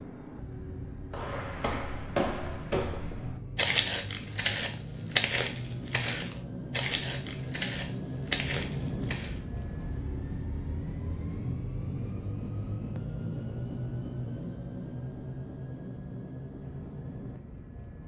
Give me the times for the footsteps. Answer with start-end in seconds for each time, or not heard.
1.1-9.4.